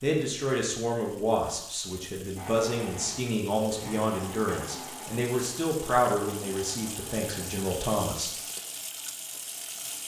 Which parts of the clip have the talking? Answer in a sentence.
You can hear the talking from 0.0 to 8.3 s.